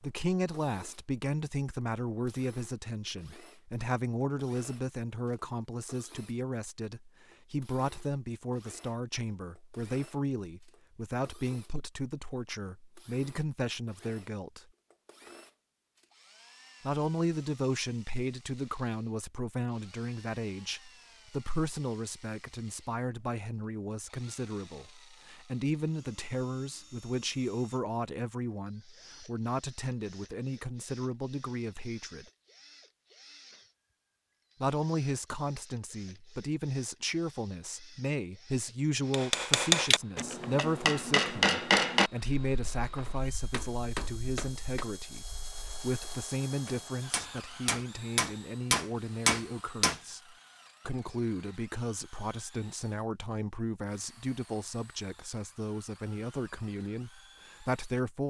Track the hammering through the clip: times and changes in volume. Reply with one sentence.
You can hear the hammering from 39.1 to 50.0 s, getting quieter then louder.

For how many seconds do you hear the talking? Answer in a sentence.
You can hear the talking for 54 seconds altogether.